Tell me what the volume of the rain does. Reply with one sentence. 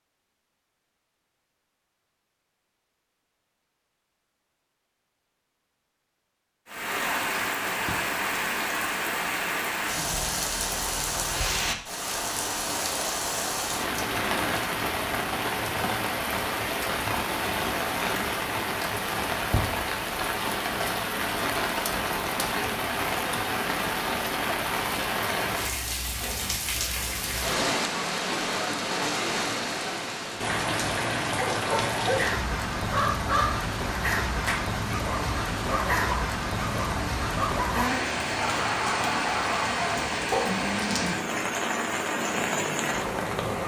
The volume of the rain stays about the same.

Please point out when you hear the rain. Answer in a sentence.
You can hear the rain from 6.7 to 43.6 s.